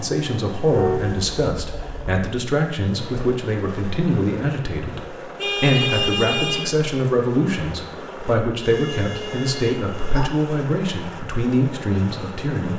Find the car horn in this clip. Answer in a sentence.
You can hear the car horn from 0.7 to 2.1 s, from 5.3 to 6.7 s and from 8.6 to 10.2 s.